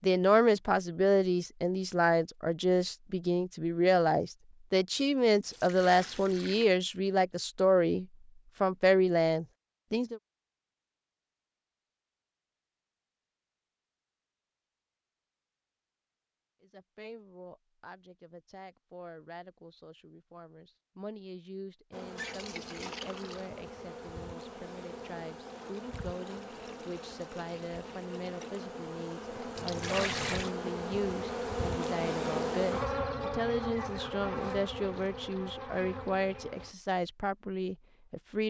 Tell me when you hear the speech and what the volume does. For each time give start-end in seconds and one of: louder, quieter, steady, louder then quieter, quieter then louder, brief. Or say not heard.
0.0-10.2 steady
16.6-38.4 louder.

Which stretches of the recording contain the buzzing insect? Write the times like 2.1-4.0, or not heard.
21.9-36.8.